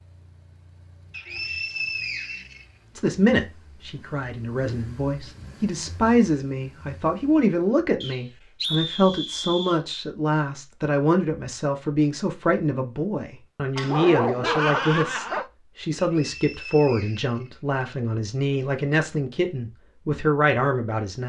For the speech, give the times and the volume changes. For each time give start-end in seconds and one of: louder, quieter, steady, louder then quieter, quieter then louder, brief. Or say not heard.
3.0-21.2 steady.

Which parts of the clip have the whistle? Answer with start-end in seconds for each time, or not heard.
1.1-2.6, 8.0-9.8, 15.9-17.9.